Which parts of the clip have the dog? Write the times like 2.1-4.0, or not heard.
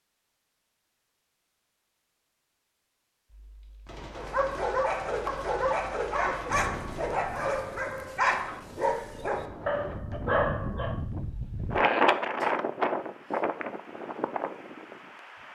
4.2-10.9.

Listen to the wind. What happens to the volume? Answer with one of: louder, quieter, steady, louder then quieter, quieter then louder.
louder then quieter.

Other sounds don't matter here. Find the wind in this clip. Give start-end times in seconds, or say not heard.
6.5-15.5.